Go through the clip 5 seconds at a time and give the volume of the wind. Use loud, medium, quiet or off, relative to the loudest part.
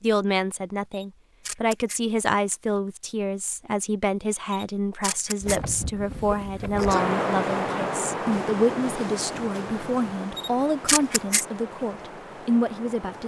off, loud, medium.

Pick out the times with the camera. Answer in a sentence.
The camera can be heard from 0.9 to 2.0 s, from 4.5 to 5.6 s and from 10.3 to 11.4 s.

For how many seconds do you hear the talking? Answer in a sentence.
You can hear the talking for 13 seconds altogether.